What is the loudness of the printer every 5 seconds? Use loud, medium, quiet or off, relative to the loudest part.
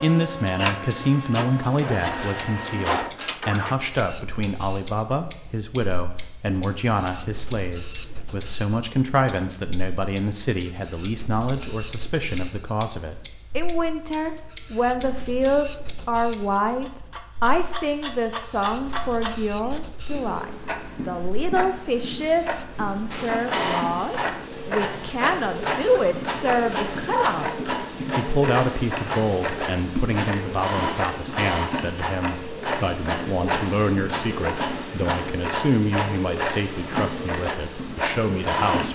loud, quiet, quiet, quiet, loud, loud, loud, loud.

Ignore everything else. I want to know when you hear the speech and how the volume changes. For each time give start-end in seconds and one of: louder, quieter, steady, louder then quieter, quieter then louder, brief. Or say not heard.
0.0-38.8 steady.